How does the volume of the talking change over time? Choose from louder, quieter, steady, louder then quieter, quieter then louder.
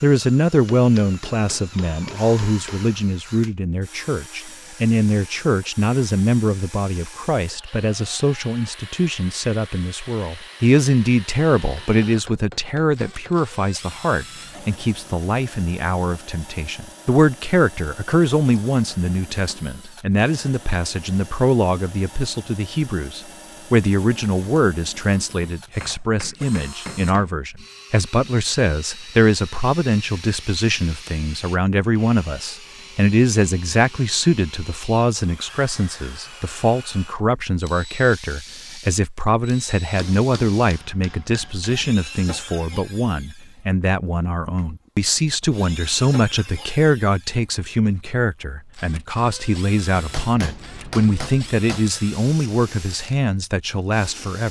steady.